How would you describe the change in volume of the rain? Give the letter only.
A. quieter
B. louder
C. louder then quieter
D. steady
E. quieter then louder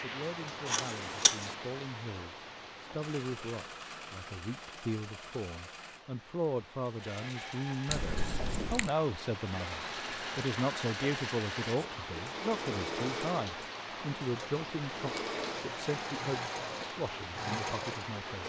E.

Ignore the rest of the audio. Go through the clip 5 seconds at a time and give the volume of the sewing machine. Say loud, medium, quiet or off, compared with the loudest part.
medium, medium, loud, loud.